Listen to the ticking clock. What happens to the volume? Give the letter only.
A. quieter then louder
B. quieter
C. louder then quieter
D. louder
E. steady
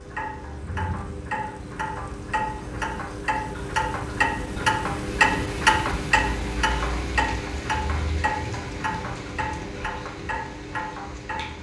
C.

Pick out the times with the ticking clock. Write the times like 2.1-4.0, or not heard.
0.0-11.5.